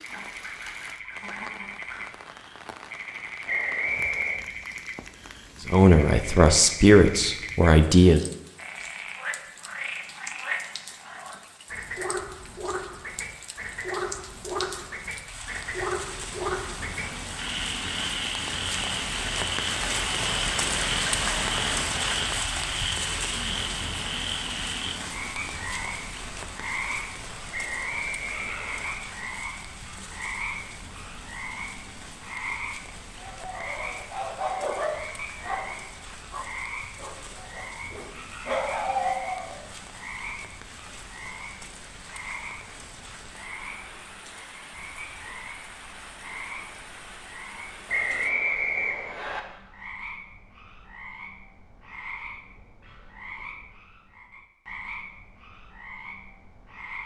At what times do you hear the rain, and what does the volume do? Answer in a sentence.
You can hear the rain from 0.0 to 48.3 s, getting louder then quieter.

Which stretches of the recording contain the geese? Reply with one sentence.
The geese can be heard from 0.1 to 2.0 s.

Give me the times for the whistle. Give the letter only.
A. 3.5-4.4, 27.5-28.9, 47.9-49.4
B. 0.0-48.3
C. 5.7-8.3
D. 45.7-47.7
A.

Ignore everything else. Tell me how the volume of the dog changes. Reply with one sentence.
The volume of the dog goes down, then up.